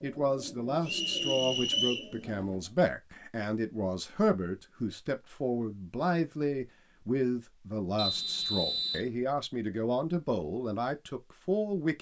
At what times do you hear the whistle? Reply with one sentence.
You can hear the whistle from 0.8 to 2.1 s and from 8.0 to 9.1 s.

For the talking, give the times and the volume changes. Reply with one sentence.
You can hear the talking from 0.0 to 11.9 s, at a steady volume.